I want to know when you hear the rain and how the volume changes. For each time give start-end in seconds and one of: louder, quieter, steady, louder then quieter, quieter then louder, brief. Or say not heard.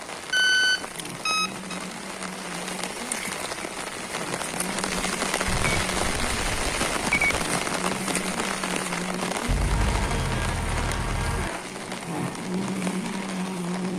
0.0-13.9 louder then quieter.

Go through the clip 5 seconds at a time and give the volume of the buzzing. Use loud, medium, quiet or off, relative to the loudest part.
medium, loud, loud.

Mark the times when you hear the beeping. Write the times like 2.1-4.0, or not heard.
0.3-1.8, 5.5-7.4, 9.4-11.5.